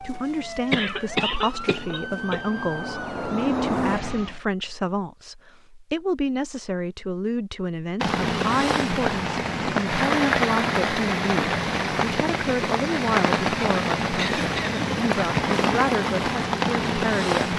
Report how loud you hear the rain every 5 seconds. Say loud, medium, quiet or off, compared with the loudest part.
off, loud, loud, loud.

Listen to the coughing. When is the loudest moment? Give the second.
1 s.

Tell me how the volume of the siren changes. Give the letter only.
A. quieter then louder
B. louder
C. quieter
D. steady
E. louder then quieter
B.